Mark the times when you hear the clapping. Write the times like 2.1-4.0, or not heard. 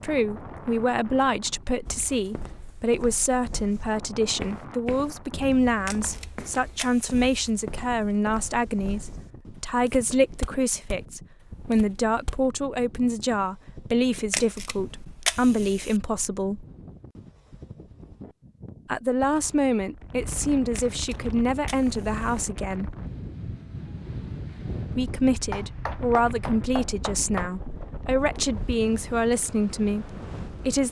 25.5-27.5.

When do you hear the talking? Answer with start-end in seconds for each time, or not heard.
0.0-16.6, 18.9-22.9, 24.9-30.8.